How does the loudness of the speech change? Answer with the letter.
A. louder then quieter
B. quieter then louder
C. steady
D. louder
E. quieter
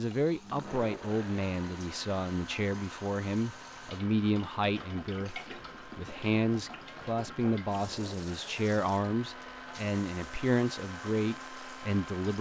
C.